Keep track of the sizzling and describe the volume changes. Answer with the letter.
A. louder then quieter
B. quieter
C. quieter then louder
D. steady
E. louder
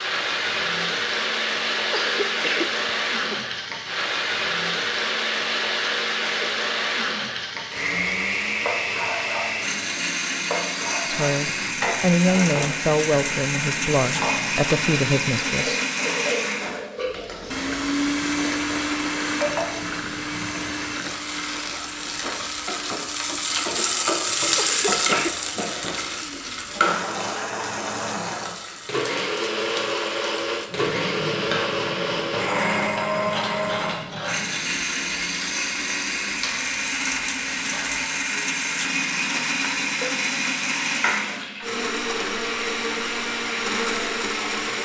A.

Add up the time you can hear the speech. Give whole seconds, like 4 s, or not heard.
5 s.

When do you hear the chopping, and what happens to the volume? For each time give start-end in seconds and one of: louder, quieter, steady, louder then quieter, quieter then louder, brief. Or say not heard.
not heard.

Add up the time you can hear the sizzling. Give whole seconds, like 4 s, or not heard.
45 s.